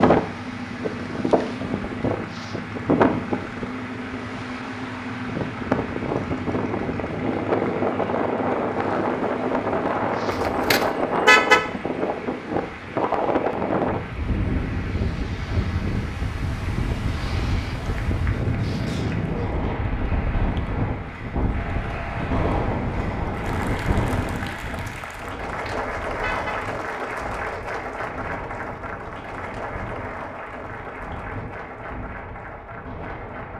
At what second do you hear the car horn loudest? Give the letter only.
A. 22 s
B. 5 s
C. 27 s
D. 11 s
D.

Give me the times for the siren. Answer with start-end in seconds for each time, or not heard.
not heard.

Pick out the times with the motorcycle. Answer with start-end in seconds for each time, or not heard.
0.1-10.7.